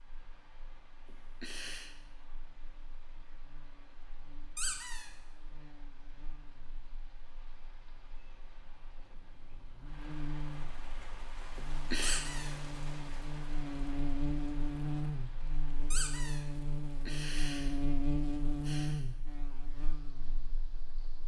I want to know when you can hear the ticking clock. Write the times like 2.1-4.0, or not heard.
not heard.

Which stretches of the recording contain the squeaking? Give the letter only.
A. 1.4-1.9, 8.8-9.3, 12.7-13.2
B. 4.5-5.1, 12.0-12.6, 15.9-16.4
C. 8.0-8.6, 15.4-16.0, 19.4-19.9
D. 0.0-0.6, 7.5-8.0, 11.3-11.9
B.